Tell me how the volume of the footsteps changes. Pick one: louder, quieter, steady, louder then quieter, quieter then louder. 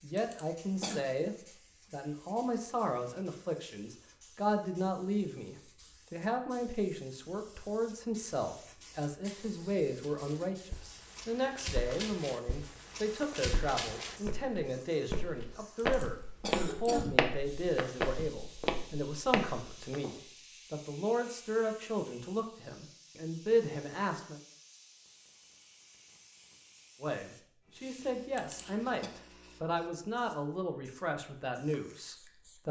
louder.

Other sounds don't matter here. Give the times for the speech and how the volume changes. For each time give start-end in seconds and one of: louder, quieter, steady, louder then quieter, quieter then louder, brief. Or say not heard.
0.0-24.4 steady
27.0-32.6 steady.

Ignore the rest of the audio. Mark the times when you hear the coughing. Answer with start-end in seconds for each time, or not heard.
0.1-1.1, 15.8-17.1, 28.4-29.1.